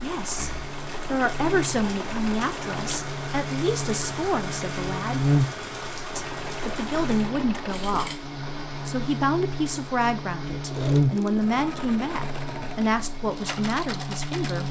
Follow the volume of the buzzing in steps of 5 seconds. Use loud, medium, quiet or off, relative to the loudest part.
medium, loud, loud.